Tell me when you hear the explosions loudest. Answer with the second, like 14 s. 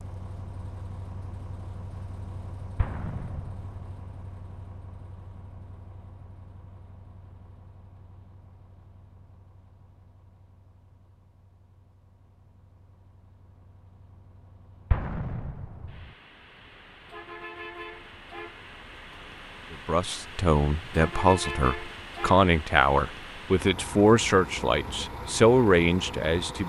15 s.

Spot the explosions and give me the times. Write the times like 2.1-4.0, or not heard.
2.8-3.8, 14.9-16.1.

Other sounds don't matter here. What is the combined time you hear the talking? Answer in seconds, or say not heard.
7 s.